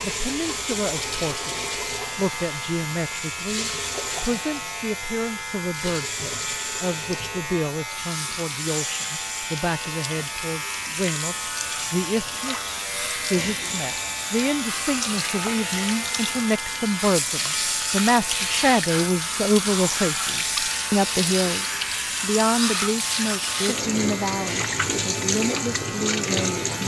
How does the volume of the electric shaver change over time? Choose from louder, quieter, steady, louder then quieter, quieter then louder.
steady.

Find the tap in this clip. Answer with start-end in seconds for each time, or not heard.
0.0-26.8.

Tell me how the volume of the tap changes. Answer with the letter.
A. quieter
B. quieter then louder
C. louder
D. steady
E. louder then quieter
C.